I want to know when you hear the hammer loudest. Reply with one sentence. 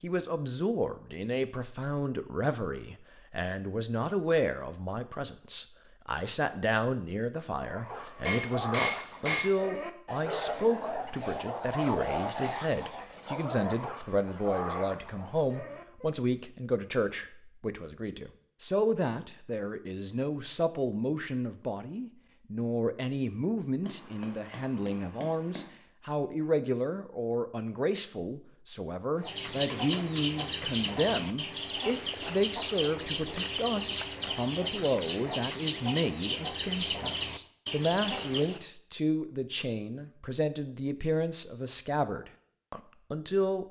The loudest moment of the hammer is at 9 seconds.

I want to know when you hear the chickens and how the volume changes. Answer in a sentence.
You can hear the chickens from 29.2 to 38.6 s, at a steady volume.